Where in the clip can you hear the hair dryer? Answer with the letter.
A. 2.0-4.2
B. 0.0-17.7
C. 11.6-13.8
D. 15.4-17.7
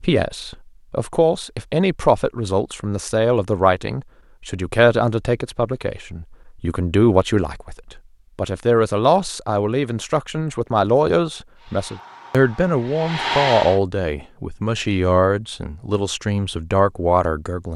C.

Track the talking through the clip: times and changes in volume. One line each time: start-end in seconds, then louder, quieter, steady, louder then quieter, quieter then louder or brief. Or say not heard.
0.0-17.7 steady.